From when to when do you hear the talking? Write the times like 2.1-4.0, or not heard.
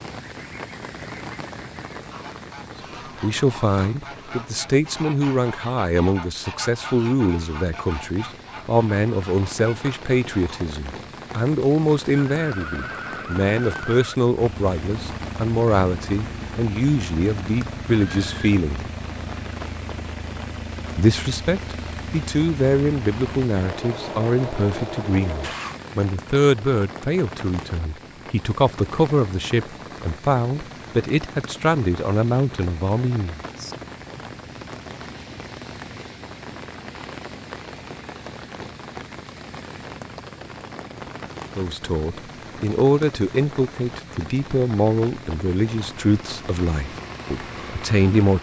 3.2-18.9, 20.9-33.4, 41.5-48.3.